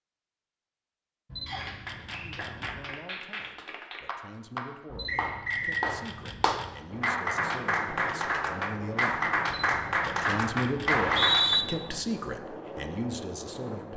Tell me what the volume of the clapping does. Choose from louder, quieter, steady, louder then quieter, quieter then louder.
louder.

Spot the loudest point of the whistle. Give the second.
11 s.